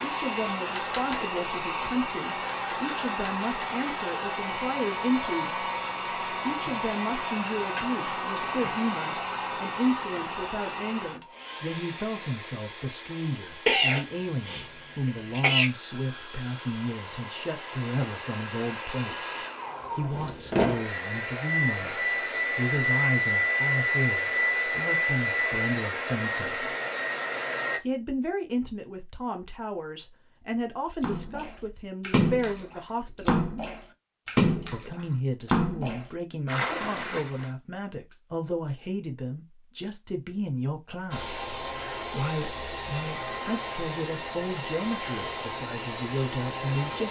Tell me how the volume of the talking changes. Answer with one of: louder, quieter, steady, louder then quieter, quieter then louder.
steady.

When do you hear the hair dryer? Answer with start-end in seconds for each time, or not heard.
0.0-27.8, 41.1-47.0.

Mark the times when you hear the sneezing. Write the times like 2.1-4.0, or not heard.
13.7-15.7.